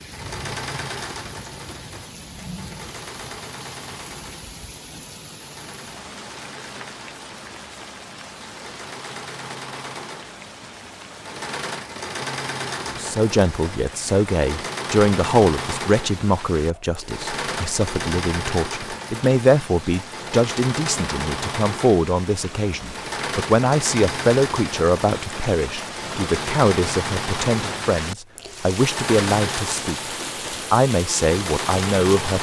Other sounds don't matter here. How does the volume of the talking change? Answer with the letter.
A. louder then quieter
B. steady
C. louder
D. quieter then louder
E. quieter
B.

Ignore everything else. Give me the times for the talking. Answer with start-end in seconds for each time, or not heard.
12.8-32.3.